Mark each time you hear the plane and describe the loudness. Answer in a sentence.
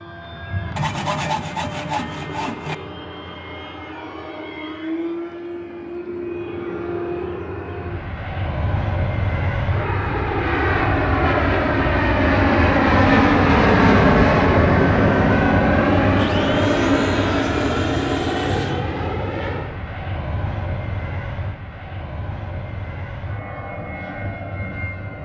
You can hear the plane from 0.0 to 25.2 s, getting louder then quieter.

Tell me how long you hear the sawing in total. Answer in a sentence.
You can hear the sawing for 5 seconds altogether.